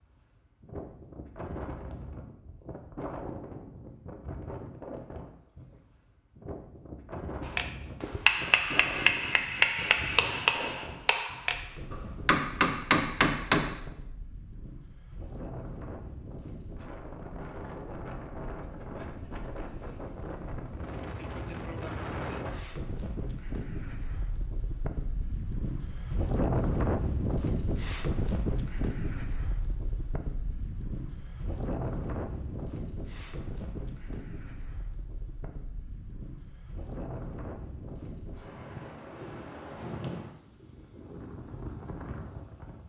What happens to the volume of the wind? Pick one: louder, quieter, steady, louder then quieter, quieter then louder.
louder then quieter.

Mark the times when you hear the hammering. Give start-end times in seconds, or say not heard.
7.5-13.8.